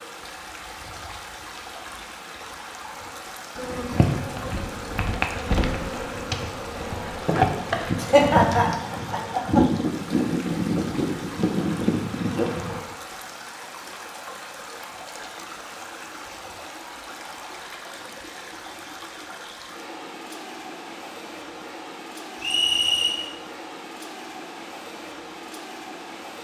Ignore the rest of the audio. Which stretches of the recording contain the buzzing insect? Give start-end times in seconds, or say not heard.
3.5-12.8.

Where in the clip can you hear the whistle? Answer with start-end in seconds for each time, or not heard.
22.4-23.1.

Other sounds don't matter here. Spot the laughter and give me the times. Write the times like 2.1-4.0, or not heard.
8.0-9.6.